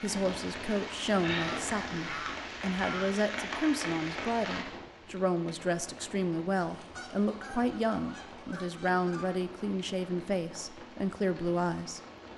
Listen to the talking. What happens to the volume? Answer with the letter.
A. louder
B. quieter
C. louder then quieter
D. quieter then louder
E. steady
E.